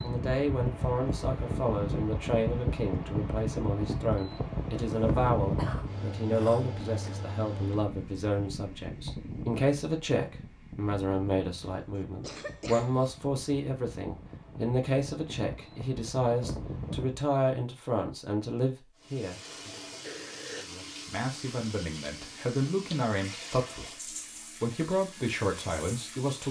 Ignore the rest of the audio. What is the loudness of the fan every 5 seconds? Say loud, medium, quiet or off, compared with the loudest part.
loud, loud, quiet, medium, off, off.